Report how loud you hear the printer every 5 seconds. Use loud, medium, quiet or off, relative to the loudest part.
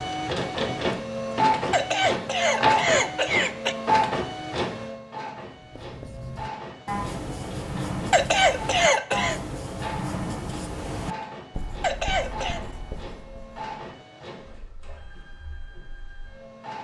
loud, quiet, quiet, quiet.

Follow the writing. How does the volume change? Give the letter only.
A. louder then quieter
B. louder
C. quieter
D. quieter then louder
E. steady
C.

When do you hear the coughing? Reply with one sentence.
The coughing can be heard from 1.7 to 3.8 s, from 8.1 to 9.4 s and from 11.8 to 12.6 s.